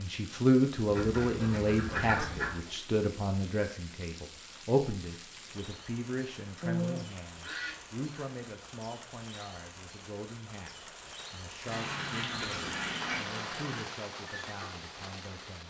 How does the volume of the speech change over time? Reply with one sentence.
The loudness of the speech goes down.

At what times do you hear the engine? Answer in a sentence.
You can hear the engine from 11.6 to 13.9 s.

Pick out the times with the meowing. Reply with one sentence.
You can't hear the meowing here.